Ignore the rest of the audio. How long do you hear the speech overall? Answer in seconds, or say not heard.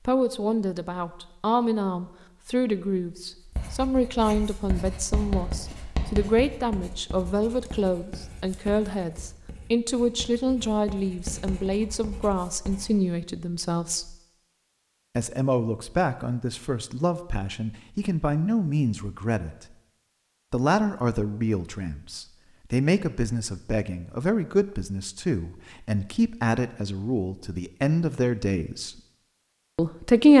28 s.